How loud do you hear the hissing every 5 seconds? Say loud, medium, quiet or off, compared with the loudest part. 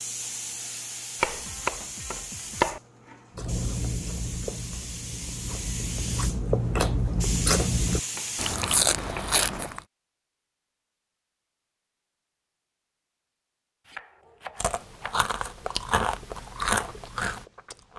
loud, loud, off, off.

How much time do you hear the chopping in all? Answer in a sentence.
You can hear the chopping for 4 seconds altogether.